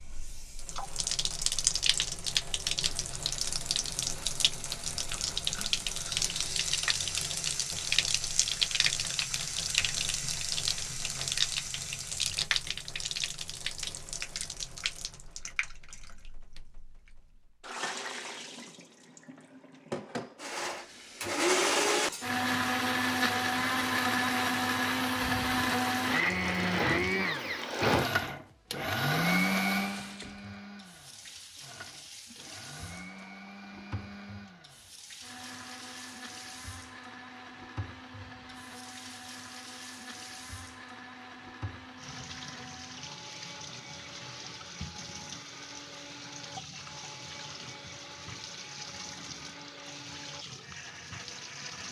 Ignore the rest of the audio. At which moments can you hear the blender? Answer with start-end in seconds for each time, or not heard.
20.4-51.8.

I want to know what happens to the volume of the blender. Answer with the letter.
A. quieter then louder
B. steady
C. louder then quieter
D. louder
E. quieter
E.